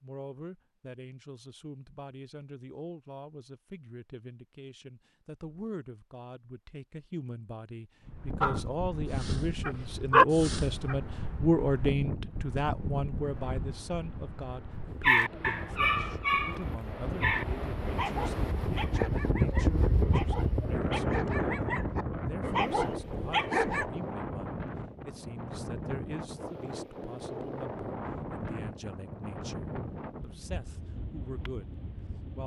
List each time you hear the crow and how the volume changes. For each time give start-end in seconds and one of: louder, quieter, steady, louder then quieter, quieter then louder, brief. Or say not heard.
not heard.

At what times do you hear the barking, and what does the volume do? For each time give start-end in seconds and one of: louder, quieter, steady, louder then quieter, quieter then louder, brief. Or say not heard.
8.4-10.9 brief
15.0-23.9 quieter then louder.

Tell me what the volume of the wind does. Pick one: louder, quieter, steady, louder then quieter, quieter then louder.
louder then quieter.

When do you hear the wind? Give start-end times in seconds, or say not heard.
8.1-32.4.